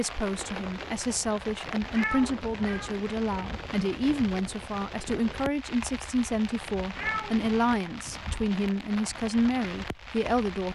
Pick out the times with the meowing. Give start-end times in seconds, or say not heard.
1.9-3.0, 7.0-7.5.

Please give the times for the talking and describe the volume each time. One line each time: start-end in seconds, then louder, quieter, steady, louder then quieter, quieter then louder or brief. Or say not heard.
0.0-10.7 steady.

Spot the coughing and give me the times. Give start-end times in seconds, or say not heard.
not heard.